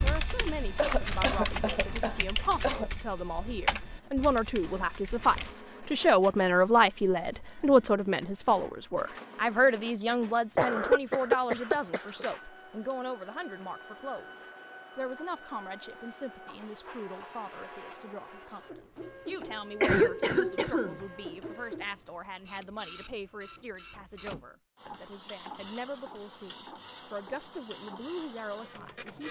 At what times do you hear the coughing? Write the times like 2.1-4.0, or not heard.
0.8-2.9, 10.6-12.2, 19.8-21.0.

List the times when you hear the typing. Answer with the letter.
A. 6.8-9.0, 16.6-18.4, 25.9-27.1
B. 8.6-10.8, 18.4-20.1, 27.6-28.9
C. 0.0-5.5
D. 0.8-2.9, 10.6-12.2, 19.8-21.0
C.